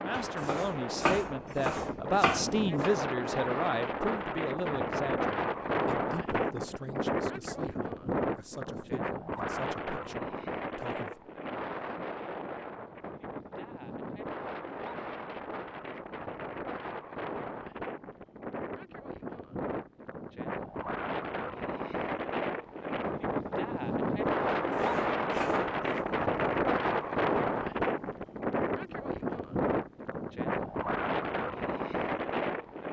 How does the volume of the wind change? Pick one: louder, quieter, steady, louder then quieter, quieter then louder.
quieter then louder.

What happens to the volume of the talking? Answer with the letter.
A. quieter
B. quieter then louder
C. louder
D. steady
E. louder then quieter
A.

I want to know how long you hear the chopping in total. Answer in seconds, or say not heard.
4 s.